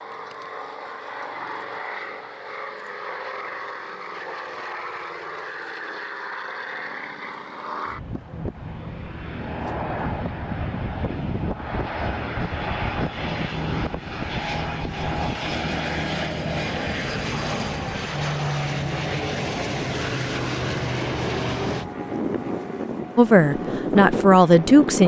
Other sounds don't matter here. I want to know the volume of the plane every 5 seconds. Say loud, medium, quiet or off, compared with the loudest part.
medium, medium, loud, loud, loud.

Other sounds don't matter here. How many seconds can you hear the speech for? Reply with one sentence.
The speech can be heard for 2 seconds in total.